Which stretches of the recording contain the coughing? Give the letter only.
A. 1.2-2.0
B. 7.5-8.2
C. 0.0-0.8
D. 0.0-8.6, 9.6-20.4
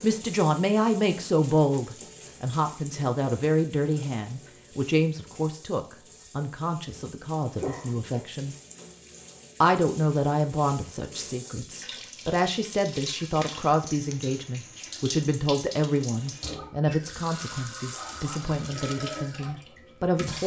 B.